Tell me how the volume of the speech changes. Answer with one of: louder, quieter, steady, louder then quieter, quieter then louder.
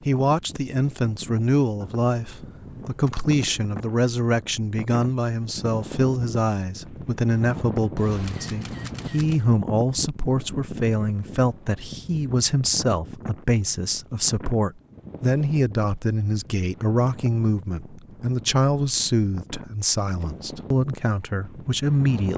steady.